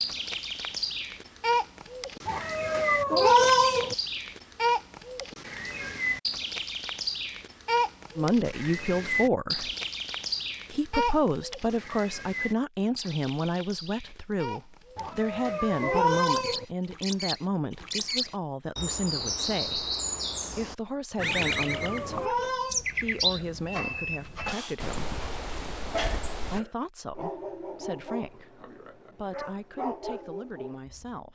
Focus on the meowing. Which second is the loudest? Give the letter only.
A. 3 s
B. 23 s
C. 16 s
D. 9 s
A.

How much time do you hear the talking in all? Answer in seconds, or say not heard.
20 s.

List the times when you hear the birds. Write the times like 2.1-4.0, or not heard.
0.0-26.6.